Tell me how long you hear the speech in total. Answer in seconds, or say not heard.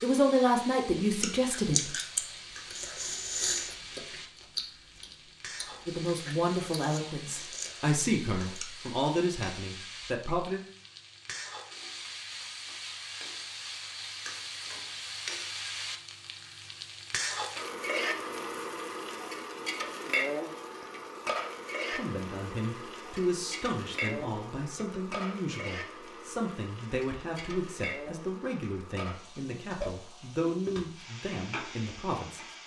17 s.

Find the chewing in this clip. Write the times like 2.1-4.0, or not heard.
1.2-8.7.